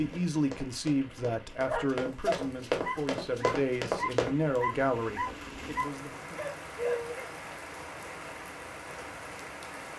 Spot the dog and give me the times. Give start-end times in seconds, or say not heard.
1.6-7.3.